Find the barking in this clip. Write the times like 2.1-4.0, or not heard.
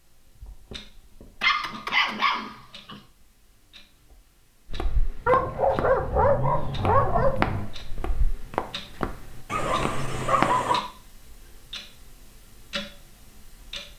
1.4-3.0, 5.2-7.7, 9.5-10.8.